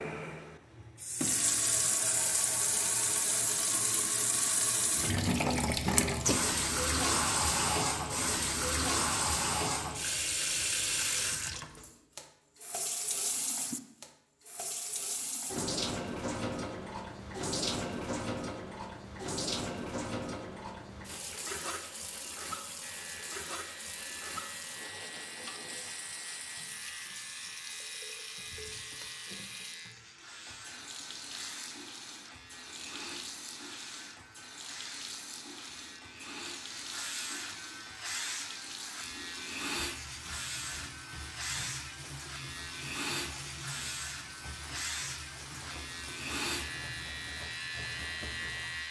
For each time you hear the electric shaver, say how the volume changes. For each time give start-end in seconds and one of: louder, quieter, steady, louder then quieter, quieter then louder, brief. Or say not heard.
22.8-48.8 louder.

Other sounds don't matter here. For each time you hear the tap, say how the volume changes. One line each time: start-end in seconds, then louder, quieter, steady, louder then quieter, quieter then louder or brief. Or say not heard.
0.0-48.8 quieter.